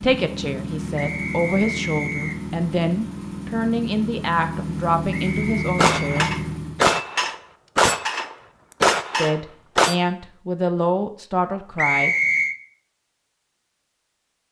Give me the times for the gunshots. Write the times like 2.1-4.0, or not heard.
5.8-9.9.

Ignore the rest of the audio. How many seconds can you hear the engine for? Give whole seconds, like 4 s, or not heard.
7 s.